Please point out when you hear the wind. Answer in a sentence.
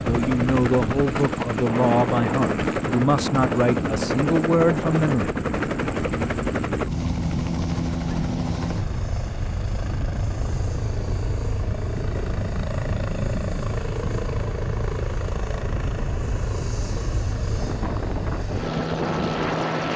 The wind can be heard from 0.0 to 19.9 s.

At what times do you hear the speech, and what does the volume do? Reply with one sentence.
You can hear the speech from 0.0 to 5.3 s, at a steady volume.